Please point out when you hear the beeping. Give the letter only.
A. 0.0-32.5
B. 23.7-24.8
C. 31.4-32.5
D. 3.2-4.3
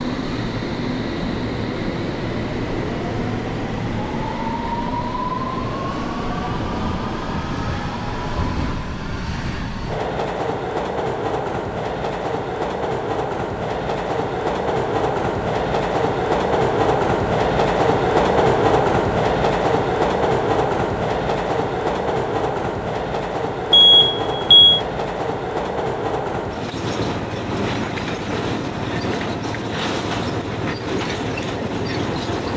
B.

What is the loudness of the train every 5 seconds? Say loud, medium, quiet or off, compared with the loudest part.
medium, medium, medium, loud, loud, medium, medium.